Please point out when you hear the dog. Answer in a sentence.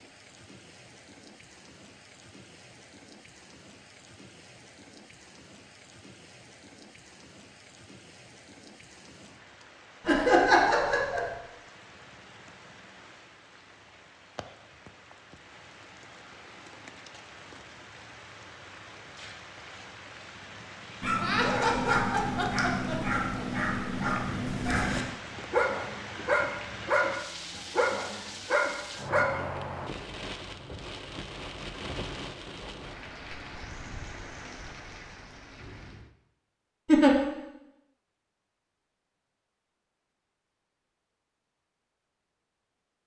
The dog can be heard from 21.0 to 29.2 s.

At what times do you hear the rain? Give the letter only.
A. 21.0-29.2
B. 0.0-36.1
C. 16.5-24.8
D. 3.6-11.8
B.